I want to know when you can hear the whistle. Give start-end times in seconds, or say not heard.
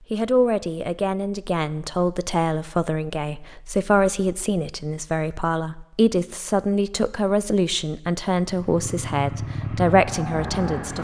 not heard.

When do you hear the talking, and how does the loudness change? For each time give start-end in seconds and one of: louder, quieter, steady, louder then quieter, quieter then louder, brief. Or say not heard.
0.1-10.9 steady.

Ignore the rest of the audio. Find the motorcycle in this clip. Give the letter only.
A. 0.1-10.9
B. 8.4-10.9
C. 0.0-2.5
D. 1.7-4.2
B.